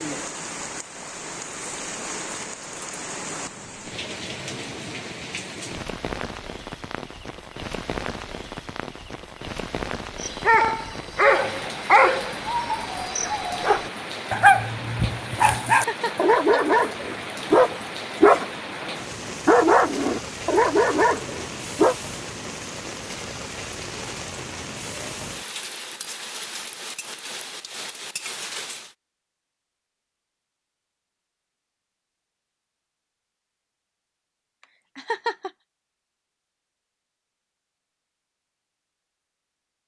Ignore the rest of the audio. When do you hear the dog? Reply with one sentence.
You can hear the dog from 10.2 to 21.9 s.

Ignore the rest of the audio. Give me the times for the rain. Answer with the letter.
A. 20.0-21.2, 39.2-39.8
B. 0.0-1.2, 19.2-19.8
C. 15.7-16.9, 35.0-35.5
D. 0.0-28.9
D.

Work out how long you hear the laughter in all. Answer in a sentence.
The laughter can be heard for 2 seconds in total.